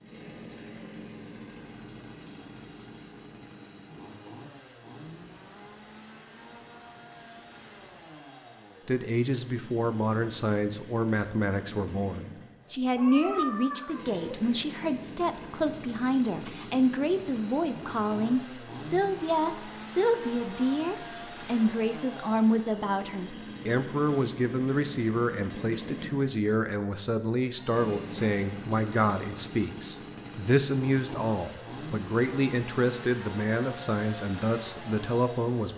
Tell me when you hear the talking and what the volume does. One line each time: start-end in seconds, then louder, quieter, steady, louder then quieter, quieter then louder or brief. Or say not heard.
8.8-35.7 steady.